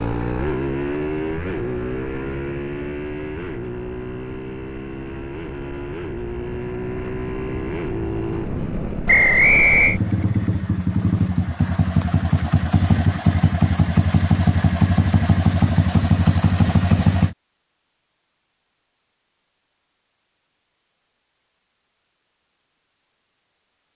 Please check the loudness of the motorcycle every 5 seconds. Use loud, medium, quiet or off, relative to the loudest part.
medium, medium, loud, loud, off.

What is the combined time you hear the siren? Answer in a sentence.
The siren can't be heard in this clip.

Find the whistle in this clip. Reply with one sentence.
The whistle can be heard from 9.1 to 10.0 s.